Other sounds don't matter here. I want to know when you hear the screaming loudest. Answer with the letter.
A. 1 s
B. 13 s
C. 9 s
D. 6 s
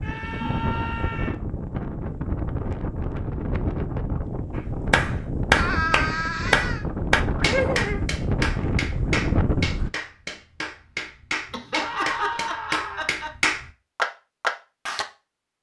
D.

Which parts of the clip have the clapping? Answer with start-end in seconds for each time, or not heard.
4.9-15.1.